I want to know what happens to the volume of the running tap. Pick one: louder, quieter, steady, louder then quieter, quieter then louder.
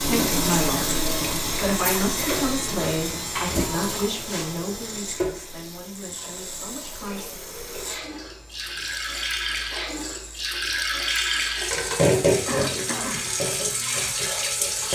quieter then louder.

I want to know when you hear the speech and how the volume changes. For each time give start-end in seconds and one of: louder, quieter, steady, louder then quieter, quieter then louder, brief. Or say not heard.
0.0-7.3 quieter.